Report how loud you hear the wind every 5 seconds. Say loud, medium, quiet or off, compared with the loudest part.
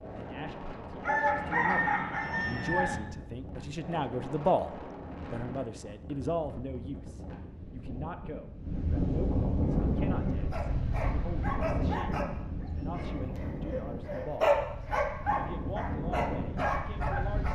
medium, loud, loud, loud.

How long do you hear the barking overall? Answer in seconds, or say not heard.
8 s.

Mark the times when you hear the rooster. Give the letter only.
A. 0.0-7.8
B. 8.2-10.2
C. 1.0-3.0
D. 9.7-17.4
C.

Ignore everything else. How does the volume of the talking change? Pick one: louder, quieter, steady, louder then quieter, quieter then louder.
louder then quieter.